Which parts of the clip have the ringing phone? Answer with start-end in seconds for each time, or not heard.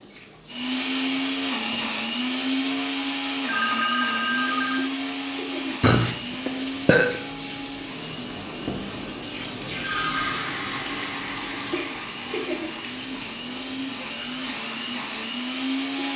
3.5-4.9, 9.8-10.4.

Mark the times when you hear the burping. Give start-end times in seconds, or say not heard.
5.8-7.2.